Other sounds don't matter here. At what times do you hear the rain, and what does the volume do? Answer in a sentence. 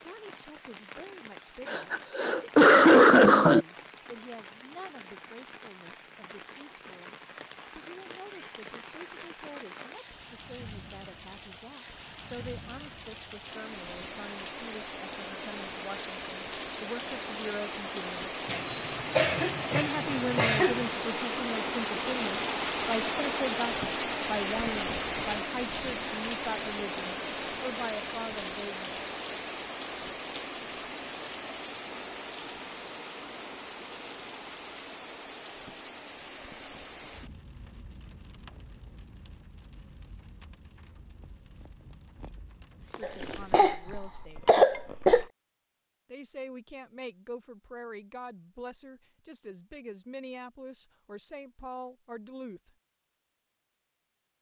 The rain can be heard from 0.0 to 43.7 s, getting louder then quieter.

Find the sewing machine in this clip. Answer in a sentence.
The sewing machine can't be heard in this clip.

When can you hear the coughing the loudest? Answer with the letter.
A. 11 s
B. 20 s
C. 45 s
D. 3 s
D.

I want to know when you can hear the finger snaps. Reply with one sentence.
You can't hear the finger snaps here.